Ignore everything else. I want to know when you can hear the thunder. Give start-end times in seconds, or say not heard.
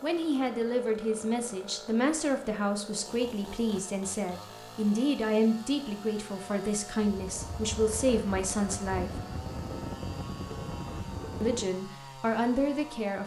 7.0-11.7.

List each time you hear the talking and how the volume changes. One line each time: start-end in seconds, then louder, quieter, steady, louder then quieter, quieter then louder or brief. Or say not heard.
0.0-9.1 steady
11.4-13.2 brief.